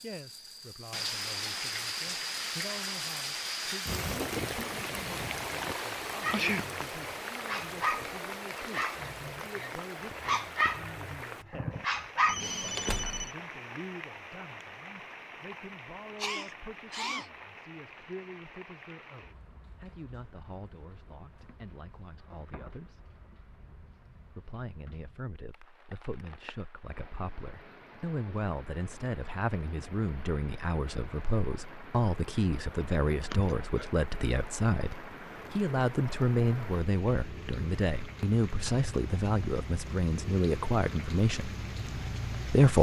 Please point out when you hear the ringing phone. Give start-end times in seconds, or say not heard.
12.2-13.3.